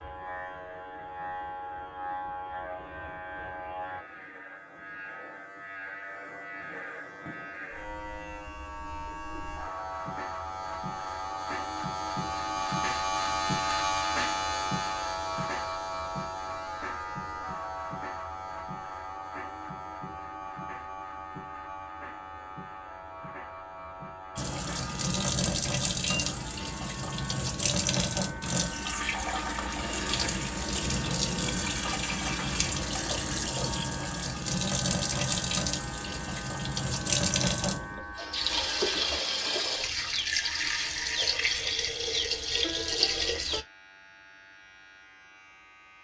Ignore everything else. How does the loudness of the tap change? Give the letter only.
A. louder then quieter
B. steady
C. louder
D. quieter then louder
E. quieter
B.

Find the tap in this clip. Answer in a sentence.
The tap can be heard from 24.4 to 43.6 s.